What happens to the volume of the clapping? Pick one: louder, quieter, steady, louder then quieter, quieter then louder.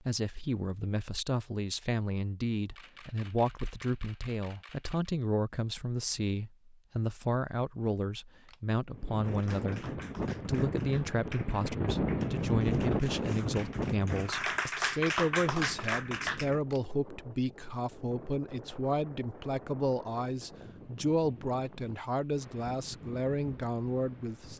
louder.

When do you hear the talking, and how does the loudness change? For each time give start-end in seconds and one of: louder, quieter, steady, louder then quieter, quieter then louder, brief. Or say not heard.
0.0-24.5 steady.